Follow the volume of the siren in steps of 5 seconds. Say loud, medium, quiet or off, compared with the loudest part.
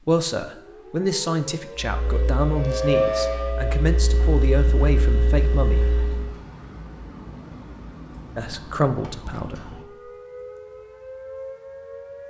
loud, quiet, medium.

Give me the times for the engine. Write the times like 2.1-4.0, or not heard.
1.8-6.4.